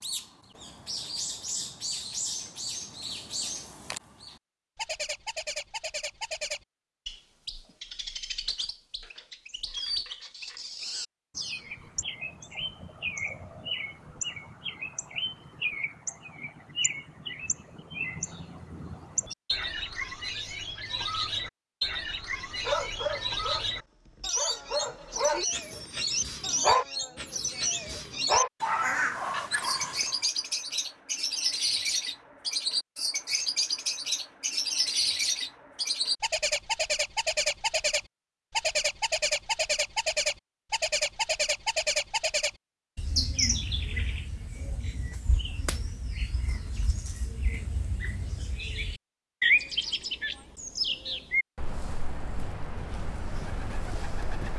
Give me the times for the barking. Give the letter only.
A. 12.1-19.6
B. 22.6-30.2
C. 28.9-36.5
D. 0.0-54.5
B.